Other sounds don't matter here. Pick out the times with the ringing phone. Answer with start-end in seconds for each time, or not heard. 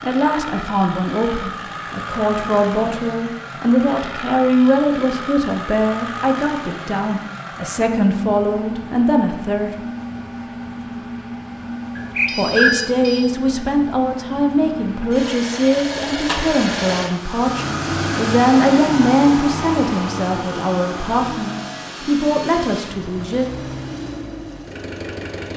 11.9-13.3.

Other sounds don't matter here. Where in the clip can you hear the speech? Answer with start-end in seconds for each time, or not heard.
0.0-9.7, 12.3-23.5.